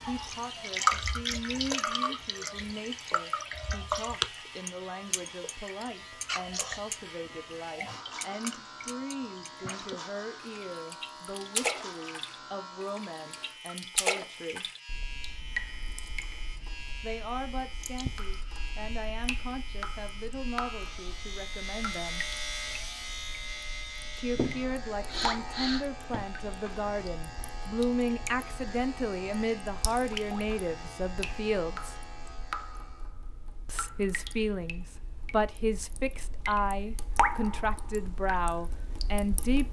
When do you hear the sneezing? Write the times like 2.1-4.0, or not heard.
24.3-26.2.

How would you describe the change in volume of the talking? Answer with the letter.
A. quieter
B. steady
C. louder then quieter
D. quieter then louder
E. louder
E.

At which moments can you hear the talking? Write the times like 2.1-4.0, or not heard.
0.0-14.7, 17.0-22.2, 24.1-31.9, 33.6-39.6.